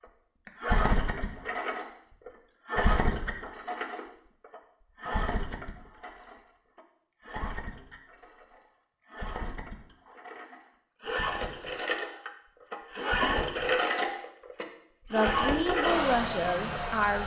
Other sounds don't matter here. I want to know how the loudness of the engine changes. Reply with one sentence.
The loudness of the engine goes down, then up.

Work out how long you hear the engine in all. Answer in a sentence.
The engine can be heard for 17 seconds in total.